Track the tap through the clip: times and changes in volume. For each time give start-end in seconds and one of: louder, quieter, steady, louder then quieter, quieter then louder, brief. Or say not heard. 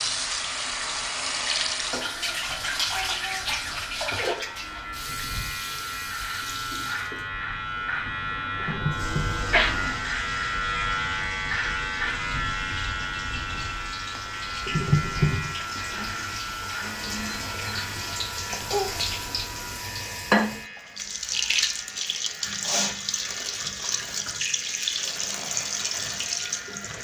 0.0-26.9 quieter then louder.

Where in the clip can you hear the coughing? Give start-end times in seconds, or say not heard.
8.6-9.7, 14.7-15.7.